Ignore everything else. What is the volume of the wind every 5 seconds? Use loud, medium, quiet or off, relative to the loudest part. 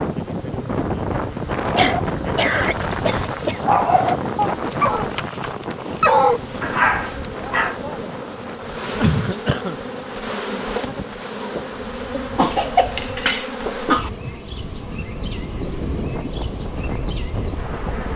loud, medium, quiet, medium.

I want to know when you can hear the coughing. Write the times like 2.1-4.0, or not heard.
1.8-3.6, 8.9-9.8, 12.1-14.1.